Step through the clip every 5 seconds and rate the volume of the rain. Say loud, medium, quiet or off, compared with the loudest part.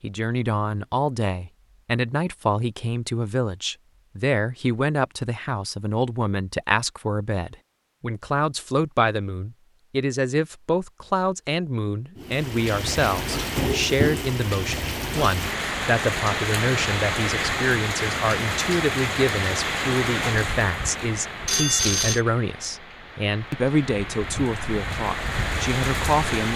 off, off, loud, loud, medium, loud.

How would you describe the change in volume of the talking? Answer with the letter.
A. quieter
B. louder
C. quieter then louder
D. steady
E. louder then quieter
D.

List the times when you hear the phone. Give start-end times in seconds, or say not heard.
21.4-22.2.